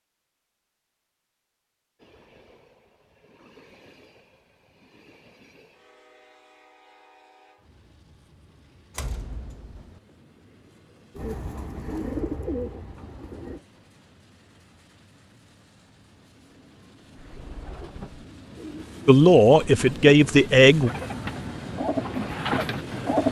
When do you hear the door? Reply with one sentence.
You can hear the door from 8.9 to 10.0 s.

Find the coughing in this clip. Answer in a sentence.
You can't hear the coughing here.